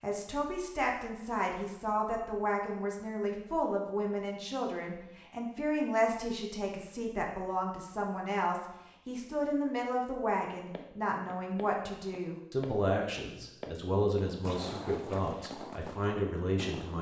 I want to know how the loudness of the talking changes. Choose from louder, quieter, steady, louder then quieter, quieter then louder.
steady.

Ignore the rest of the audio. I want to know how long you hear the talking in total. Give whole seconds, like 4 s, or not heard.
17 s.